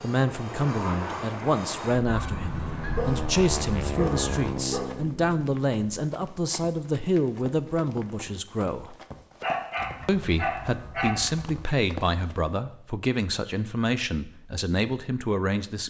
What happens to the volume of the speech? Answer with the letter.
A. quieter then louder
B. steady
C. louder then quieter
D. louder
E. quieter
B.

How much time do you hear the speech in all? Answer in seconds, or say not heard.
15 s.